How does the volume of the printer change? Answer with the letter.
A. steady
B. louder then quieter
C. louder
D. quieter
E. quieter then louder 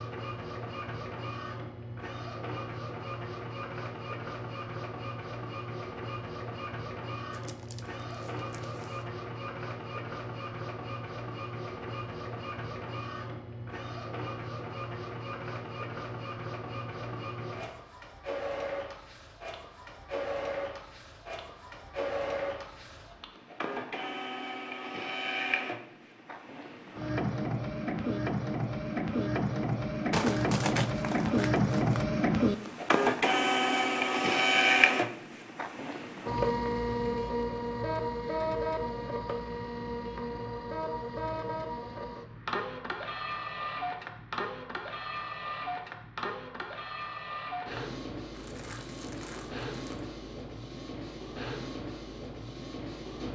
B.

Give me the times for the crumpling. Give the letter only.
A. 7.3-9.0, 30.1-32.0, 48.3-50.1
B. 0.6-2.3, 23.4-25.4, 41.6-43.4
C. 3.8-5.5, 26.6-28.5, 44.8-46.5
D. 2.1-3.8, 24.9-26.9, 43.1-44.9
A.